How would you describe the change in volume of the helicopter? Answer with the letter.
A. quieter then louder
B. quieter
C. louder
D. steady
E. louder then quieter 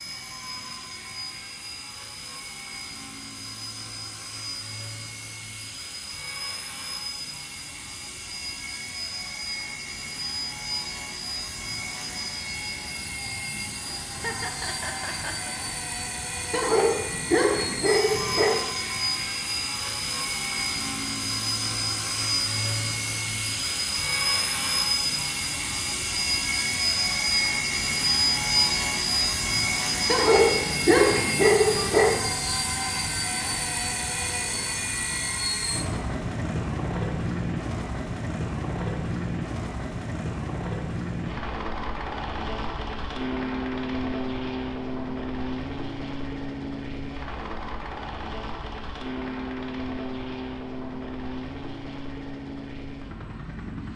E.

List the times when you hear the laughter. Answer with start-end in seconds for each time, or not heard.
14.1-15.6.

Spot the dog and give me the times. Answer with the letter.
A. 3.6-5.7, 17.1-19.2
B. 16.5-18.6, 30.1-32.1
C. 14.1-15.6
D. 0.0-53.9
B.